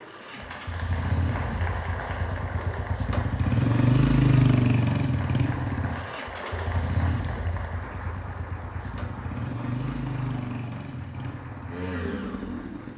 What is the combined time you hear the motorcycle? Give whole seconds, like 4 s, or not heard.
13 s.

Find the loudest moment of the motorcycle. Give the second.
4 s.